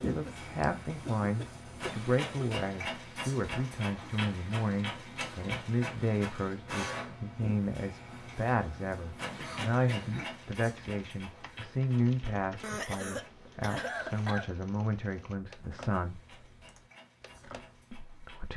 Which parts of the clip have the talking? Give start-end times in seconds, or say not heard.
0.0-16.2, 17.9-18.5.